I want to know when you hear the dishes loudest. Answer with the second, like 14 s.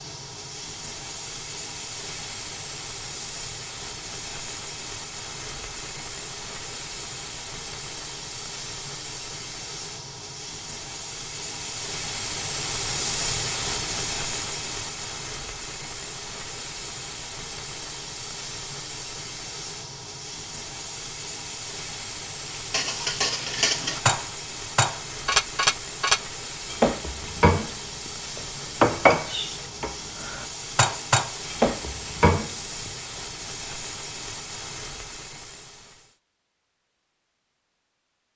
29 s.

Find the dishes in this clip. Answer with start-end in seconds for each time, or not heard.
22.5-32.9.